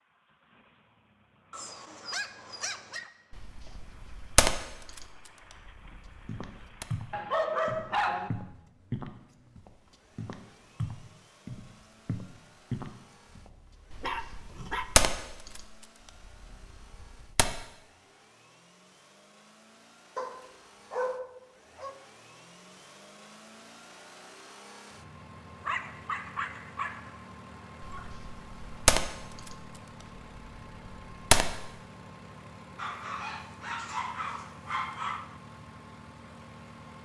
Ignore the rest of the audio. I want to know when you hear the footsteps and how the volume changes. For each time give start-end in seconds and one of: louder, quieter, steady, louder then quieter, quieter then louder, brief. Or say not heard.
6.2-13.6 quieter then louder.